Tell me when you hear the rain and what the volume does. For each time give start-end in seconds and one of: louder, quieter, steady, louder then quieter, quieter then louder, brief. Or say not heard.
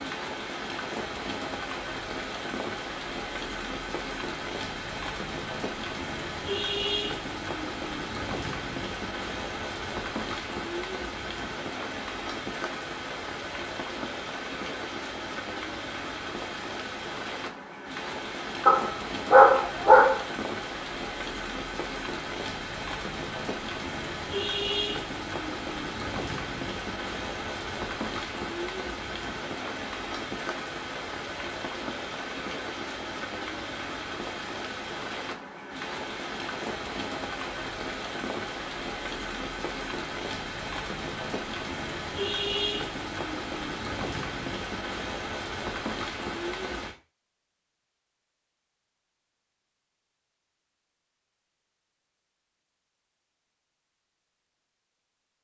0.0-47.0 steady.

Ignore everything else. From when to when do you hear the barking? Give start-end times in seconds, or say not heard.
18.6-20.4.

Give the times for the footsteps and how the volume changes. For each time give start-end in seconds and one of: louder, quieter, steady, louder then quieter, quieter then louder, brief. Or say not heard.
not heard.